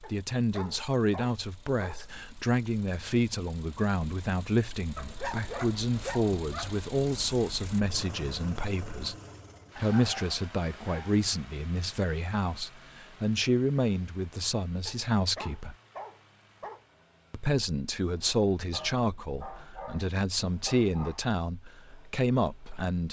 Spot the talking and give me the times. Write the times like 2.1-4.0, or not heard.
0.0-9.2, 9.8-15.8, 17.3-23.0.